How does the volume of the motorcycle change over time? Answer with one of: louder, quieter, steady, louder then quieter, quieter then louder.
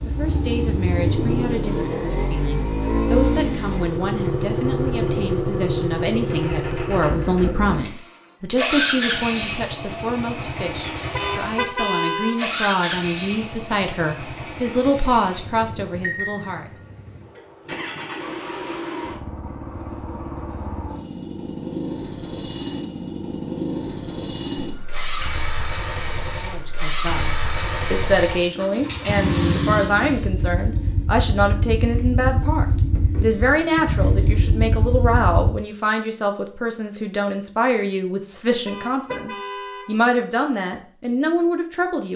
quieter then louder.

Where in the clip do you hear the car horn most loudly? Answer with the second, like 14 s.
12 s.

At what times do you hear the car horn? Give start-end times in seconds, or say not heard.
11.1-12.5, 38.6-40.0.